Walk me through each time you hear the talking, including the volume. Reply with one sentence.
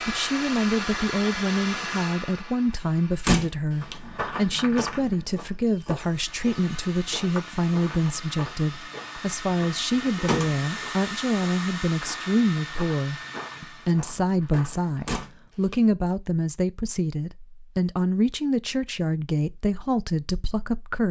The talking can be heard from 0.1 to 21.0 s, at a steady volume.